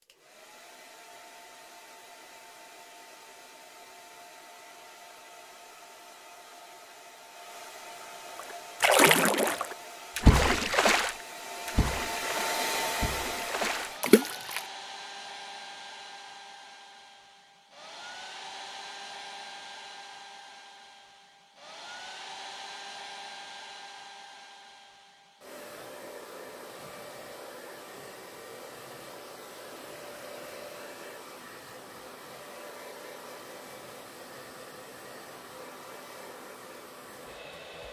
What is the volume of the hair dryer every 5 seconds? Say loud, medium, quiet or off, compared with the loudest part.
quiet, medium, loud, medium, medium, medium, medium, medium.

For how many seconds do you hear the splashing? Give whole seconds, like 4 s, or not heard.
6 s.